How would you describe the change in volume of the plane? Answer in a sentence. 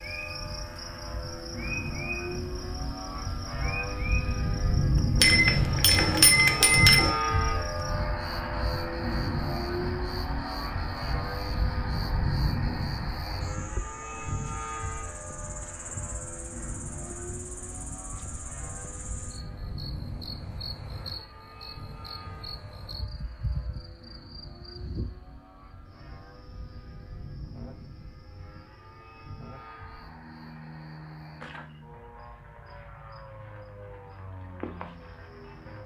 The volume of the plane goes down.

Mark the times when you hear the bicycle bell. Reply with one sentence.
You can hear the bicycle bell from 5.2 to 7.2 s.